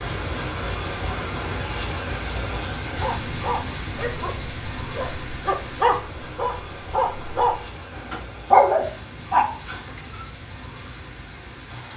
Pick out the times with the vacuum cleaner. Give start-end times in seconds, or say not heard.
not heard.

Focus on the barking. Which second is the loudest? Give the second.
9 s.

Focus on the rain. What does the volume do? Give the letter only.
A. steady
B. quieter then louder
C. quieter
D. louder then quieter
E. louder
C.